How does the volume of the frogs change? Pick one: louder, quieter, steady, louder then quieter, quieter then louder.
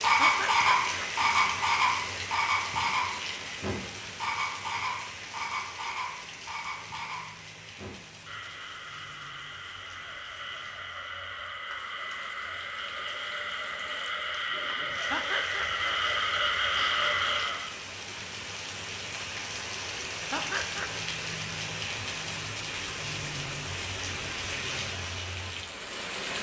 quieter then louder.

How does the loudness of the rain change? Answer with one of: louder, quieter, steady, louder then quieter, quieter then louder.
quieter then louder.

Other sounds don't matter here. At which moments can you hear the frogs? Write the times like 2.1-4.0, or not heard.
0.0-17.6.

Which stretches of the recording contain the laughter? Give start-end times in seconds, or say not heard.
0.2-1.1, 15.1-15.8, 20.3-21.1.